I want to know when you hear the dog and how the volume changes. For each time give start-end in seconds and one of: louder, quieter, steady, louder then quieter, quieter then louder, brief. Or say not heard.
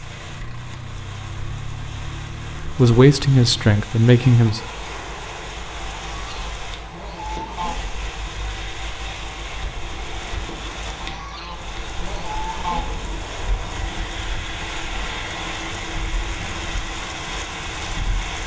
not heard.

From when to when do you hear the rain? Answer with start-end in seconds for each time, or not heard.
0.0-18.4.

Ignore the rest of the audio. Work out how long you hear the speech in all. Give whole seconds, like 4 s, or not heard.
2 s.